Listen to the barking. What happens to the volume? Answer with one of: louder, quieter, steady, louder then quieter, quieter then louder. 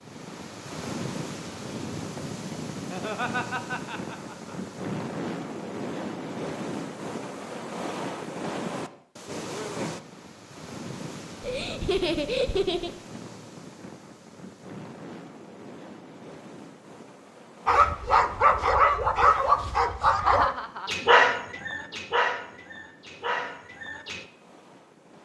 quieter.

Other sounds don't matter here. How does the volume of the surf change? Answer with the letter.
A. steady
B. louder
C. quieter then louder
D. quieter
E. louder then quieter
D.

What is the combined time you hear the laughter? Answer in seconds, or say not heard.
4 s.